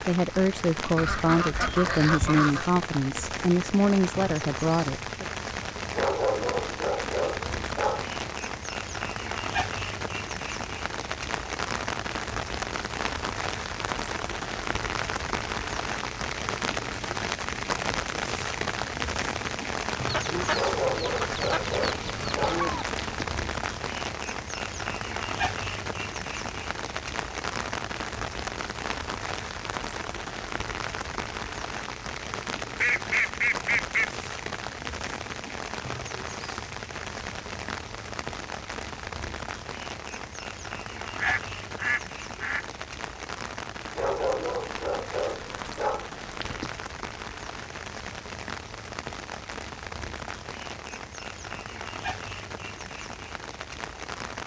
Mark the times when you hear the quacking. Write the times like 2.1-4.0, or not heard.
0.9-2.6, 20.1-22.9, 32.8-34.1, 41.1-42.6.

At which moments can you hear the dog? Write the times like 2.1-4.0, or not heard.
5.9-8.2, 20.5-23.3, 44.0-46.8.